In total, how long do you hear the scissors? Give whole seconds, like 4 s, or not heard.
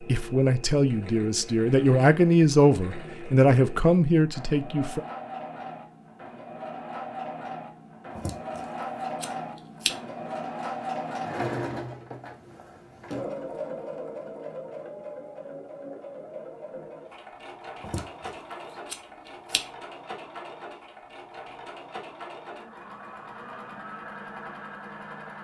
2 s.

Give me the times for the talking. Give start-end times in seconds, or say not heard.
0.1-5.0.